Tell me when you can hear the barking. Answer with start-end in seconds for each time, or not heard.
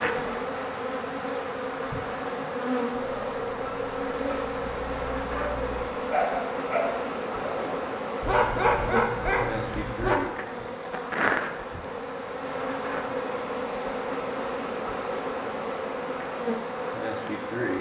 2.9-10.2.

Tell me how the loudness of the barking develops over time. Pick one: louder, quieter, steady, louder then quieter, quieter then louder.
louder.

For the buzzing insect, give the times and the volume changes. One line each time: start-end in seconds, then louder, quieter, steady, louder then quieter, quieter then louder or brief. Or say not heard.
0.0-17.7 steady.